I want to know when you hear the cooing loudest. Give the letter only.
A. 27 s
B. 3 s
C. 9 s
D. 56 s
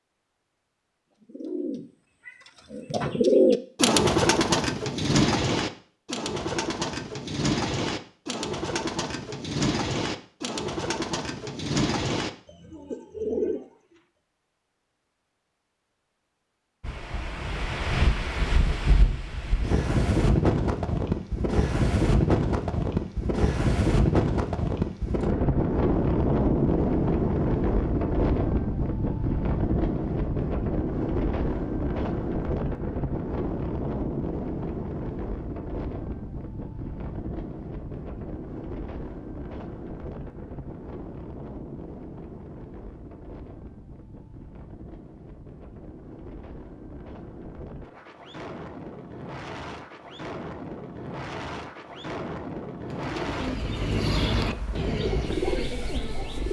B.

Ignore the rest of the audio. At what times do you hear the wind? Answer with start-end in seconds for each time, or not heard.
16.8-56.4.